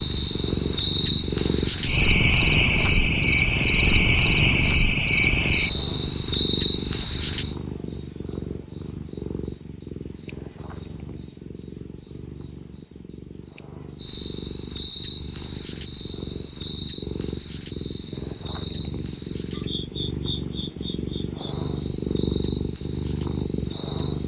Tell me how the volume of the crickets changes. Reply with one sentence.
The loudness of the crickets goes down.